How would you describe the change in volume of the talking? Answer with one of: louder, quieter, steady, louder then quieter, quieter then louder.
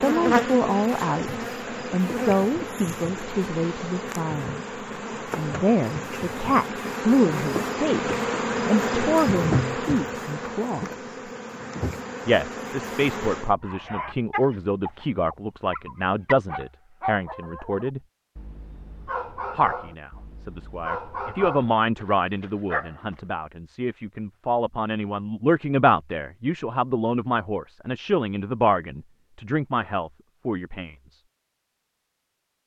steady.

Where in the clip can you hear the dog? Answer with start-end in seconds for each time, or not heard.
13.6-23.1.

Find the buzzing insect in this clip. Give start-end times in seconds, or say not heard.
0.0-13.6.